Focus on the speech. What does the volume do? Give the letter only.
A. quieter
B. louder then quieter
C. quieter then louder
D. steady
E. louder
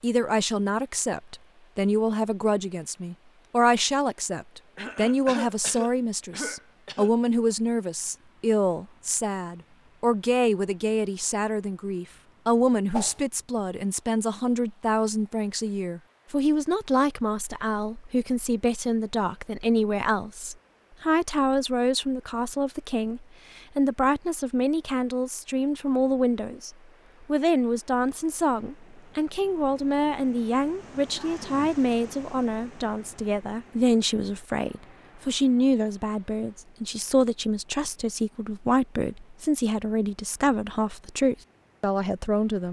D.